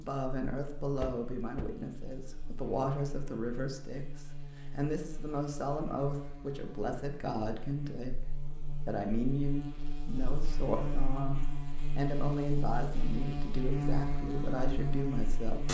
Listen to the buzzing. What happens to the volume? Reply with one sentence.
The loudness of the buzzing goes up.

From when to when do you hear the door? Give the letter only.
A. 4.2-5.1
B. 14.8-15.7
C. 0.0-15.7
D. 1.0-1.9
D.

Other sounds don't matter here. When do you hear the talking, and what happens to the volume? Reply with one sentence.
You can hear the talking from 0.0 to 15.7 s, at a steady volume.